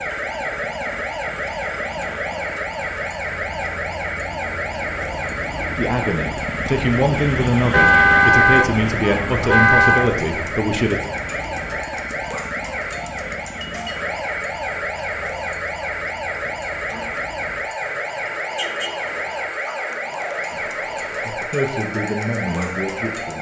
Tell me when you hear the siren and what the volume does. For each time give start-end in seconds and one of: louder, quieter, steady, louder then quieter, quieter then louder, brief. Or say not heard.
0.0-23.3 steady.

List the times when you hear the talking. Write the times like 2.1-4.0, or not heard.
5.8-11.0, 20.5-23.3.